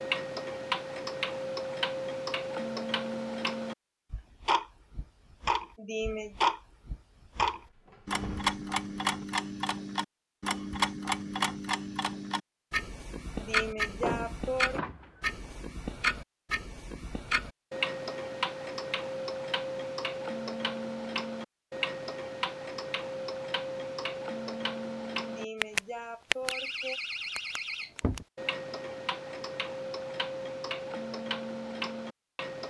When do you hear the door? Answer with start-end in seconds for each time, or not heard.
7.4-9.3, 13.8-15.7, 26.5-28.2.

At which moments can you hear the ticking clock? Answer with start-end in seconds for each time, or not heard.
0.0-32.6.